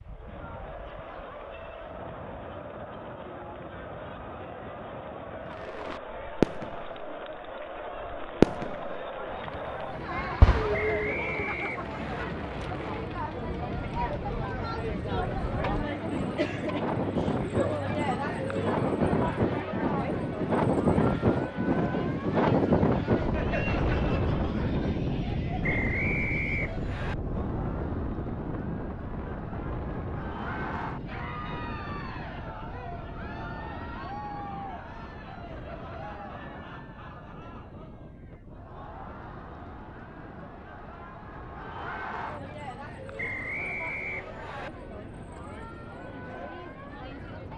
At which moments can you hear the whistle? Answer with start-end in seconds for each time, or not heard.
10.7-12.2, 25.6-27.1, 43.1-44.7.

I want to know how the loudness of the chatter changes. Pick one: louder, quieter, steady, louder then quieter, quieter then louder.
louder then quieter.